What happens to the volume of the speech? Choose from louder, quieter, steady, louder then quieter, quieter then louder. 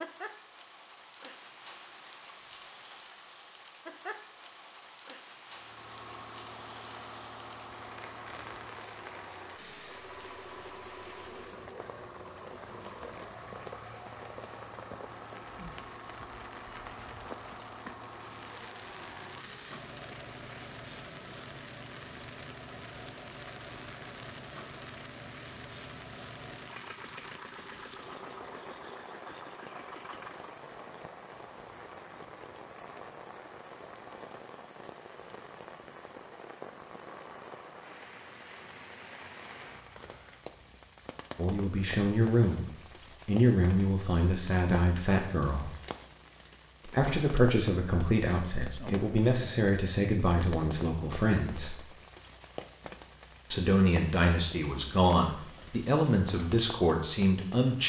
steady.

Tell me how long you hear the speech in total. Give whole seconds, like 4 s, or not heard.
14 s.